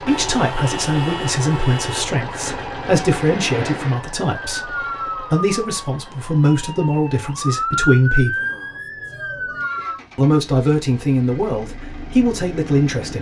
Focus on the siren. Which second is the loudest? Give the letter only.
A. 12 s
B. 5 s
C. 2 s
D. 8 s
D.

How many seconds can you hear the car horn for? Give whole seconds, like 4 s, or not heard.
2 s.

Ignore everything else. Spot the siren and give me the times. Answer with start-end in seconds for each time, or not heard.
2.4-10.0.